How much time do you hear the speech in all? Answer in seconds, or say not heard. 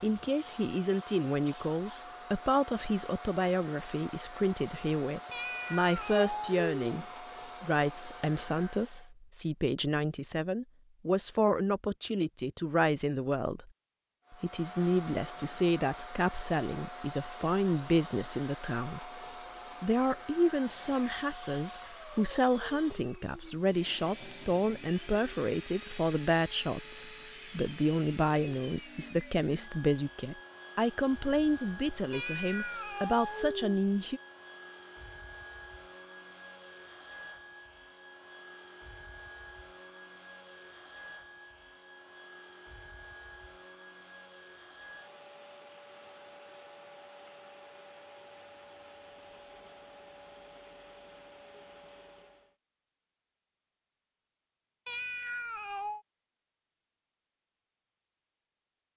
33 s.